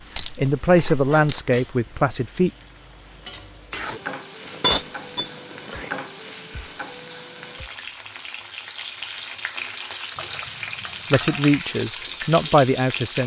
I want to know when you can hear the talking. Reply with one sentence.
The talking can be heard from 0.3 to 2.5 s and from 11.1 to 13.2 s.